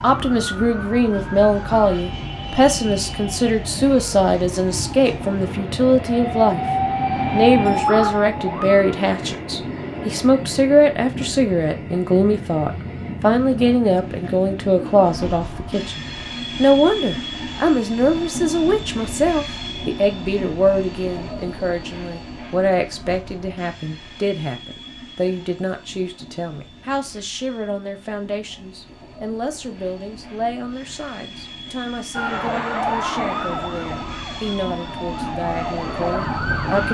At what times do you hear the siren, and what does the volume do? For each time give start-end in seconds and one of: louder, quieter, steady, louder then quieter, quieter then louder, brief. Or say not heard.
0.0-8.8 louder
32.1-36.8 quieter then louder.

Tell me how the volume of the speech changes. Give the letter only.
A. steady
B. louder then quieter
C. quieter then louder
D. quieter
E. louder
D.